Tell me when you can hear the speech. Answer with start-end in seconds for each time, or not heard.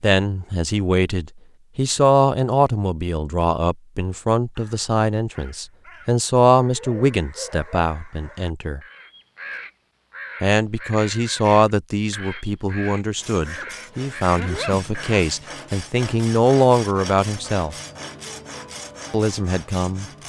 0.0-8.8, 10.4-17.8, 19.1-20.1.